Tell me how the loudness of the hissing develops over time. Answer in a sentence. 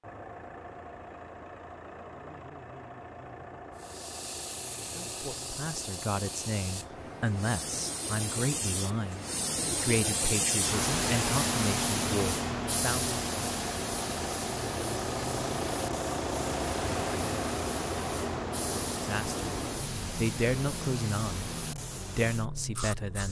The loudness of the hissing goes up, then down.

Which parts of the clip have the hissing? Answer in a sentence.
The hissing can be heard from 3.8 to 23.2 s.